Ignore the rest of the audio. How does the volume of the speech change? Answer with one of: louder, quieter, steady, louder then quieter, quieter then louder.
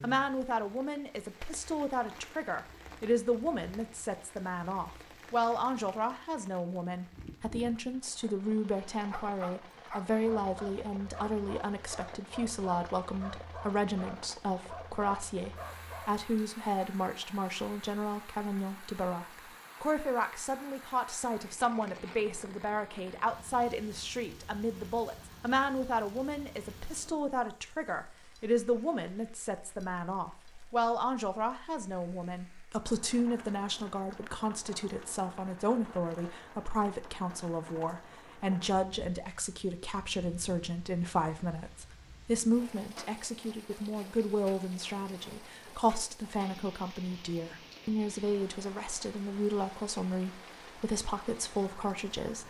steady.